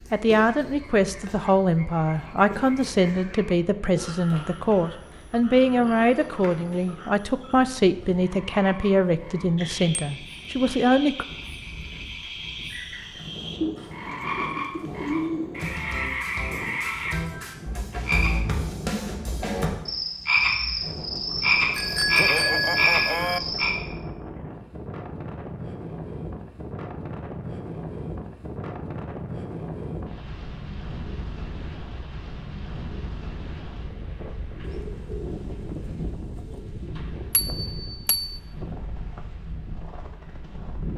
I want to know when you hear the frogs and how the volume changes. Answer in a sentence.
You can hear the frogs from 0.0 to 23.7 s, getting louder.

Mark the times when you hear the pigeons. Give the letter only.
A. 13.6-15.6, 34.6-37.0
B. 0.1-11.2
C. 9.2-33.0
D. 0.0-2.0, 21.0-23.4
A.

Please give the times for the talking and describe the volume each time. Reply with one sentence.
You can hear the talking from 0.1 to 11.2 s, at a steady volume.